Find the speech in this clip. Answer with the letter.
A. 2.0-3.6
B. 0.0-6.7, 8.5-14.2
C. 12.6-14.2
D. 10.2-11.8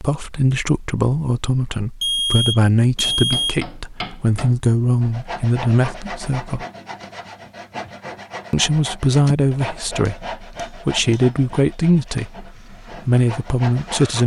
B.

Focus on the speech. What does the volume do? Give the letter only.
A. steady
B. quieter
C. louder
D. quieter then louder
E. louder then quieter
A.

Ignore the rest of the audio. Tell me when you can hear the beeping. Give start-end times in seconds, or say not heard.
2.0-3.6.